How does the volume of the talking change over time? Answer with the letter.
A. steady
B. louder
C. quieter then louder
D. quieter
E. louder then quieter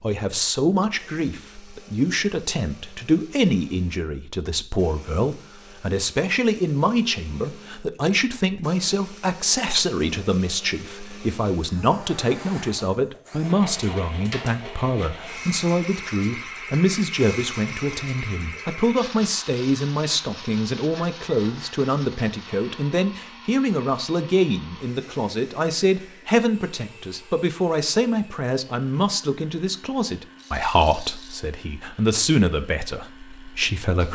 A.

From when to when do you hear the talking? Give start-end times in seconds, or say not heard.
0.0-34.1.